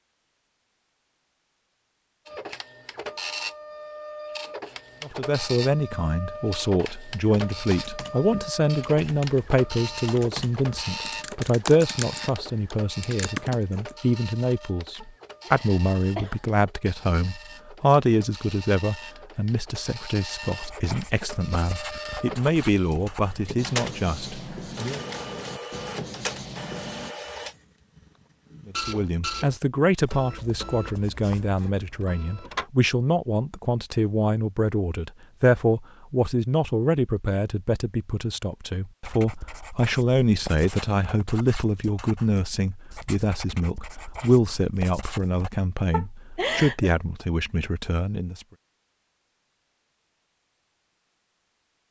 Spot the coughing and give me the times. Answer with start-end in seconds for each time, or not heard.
15.0-16.6, 45.9-46.9.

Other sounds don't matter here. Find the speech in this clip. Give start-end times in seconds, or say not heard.
5.0-25.0, 28.6-48.5.